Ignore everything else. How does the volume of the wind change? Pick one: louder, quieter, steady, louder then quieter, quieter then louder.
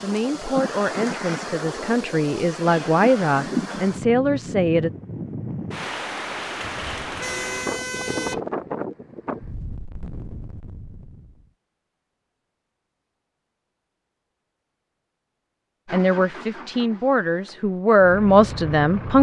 quieter.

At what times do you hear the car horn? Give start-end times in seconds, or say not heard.
6.6-8.4.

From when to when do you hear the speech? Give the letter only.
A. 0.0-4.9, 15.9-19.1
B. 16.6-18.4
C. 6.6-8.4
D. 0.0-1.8
A.